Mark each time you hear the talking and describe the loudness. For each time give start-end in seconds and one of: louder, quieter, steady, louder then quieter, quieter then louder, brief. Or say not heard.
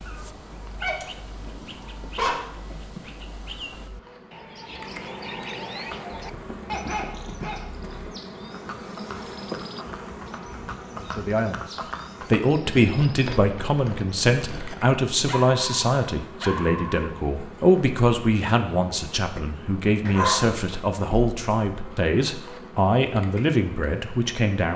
10.9-24.7 steady.